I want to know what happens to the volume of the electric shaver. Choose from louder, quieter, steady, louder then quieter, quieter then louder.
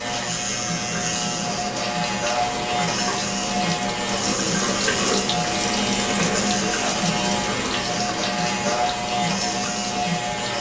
steady.